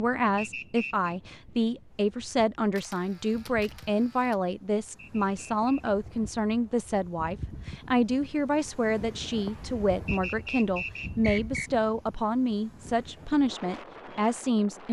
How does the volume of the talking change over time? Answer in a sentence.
The loudness of the talking stays about the same.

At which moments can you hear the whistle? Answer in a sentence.
The whistle can be heard from 0.3 to 1.1 s, from 5.0 to 5.9 s and from 10.1 to 11.7 s.